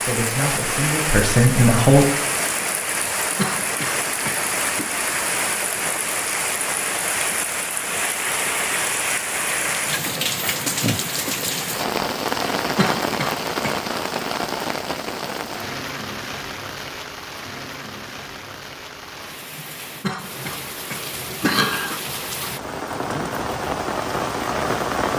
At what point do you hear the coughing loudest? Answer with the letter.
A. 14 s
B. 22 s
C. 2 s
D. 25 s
B.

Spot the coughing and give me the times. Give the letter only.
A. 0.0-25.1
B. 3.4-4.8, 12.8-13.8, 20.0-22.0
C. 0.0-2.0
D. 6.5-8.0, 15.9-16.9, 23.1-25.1
B.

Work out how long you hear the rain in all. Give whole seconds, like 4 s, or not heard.
25 s.